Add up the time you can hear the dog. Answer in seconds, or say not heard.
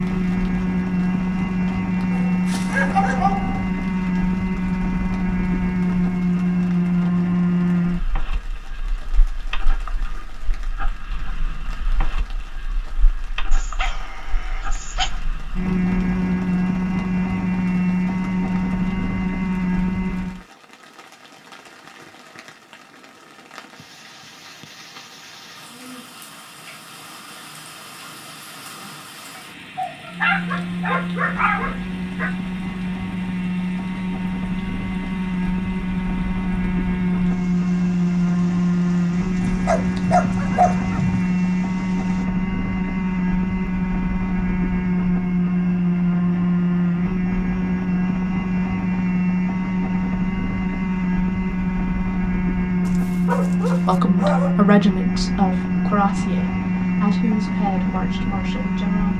10 s.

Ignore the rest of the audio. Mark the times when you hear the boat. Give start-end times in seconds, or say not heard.
0.0-20.4, 30.1-59.1.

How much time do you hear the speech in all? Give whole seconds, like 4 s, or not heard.
5 s.